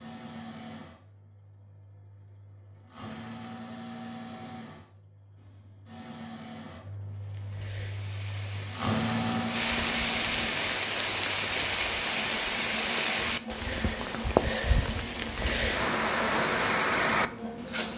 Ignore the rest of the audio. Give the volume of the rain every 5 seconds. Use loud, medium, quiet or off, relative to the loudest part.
off, medium, loud, loud.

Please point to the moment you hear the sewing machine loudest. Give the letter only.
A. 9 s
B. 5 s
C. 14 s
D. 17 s
A.